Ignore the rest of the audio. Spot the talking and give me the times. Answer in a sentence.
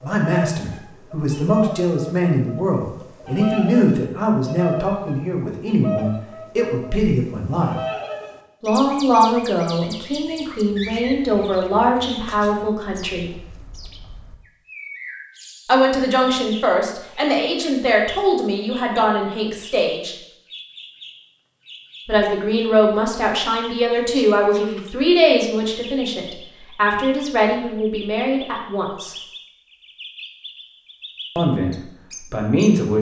You can hear the talking from 0.0 to 7.8 s, from 8.6 to 13.3 s, from 15.7 to 20.1 s, from 22.1 to 29.1 s and from 31.4 to 32.9 s.